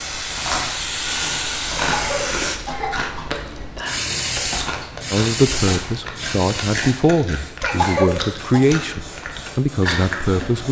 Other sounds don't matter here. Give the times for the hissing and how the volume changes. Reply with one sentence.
The hissing can be heard from 0.0 to 10.6 s, getting quieter.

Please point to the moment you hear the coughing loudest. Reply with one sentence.
The loudest moment of the coughing is at 8 seconds.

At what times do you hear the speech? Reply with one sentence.
You can hear the speech from 5.1 to 10.6 s.